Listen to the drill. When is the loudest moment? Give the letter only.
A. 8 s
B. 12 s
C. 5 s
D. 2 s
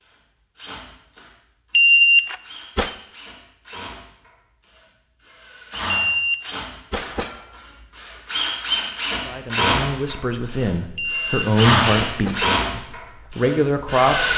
B.